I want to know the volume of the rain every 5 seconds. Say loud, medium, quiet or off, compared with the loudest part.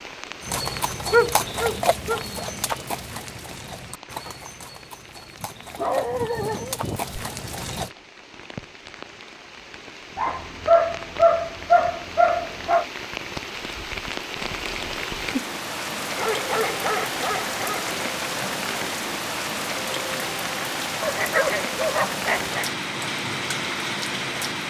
quiet, quiet, medium, loud, loud.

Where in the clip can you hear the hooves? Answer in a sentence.
The hooves can be heard from 0.4 to 7.9 s.